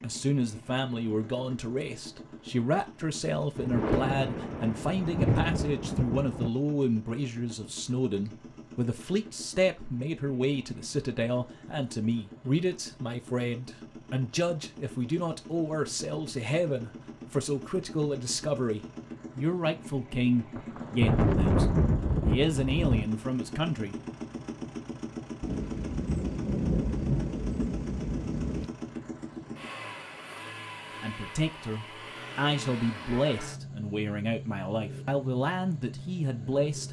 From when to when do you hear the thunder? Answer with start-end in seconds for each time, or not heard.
3.5-6.5, 20.6-23.1, 25.4-28.7.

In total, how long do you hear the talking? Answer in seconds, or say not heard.
30 s.